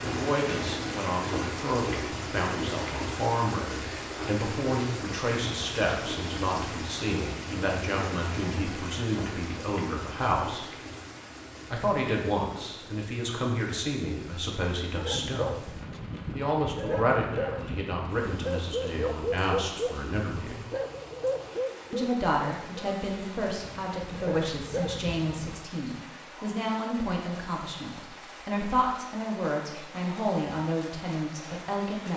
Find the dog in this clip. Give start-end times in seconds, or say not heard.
14.9-25.6.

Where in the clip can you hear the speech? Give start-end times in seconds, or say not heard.
0.0-10.7, 11.7-20.6, 21.9-32.1.